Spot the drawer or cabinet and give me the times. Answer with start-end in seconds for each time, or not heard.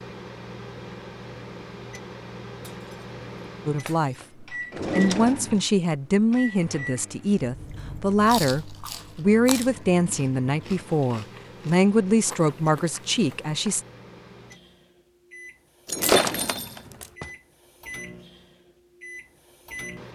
4.7-5.7, 15.8-17.4.